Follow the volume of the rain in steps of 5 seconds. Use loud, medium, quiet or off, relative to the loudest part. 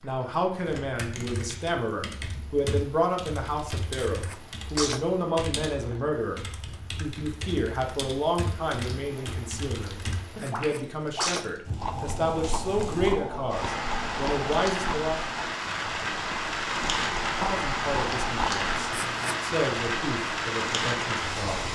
quiet, quiet, medium, loud, loud.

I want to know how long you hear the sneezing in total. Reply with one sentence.
You can hear the sneezing for 3 seconds altogether.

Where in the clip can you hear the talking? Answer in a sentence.
The talking can be heard from 0.0 to 6.4 s, from 7.0 to 15.2 s and from 17.4 to 21.6 s.